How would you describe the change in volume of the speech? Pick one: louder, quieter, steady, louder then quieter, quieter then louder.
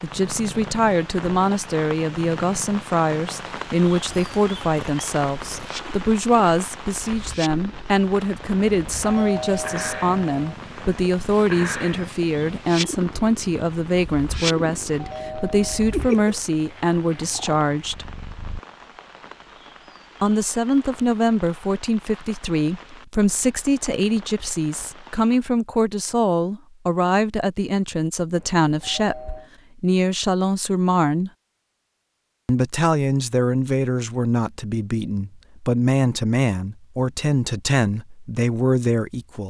steady.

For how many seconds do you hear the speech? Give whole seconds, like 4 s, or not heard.
36 s.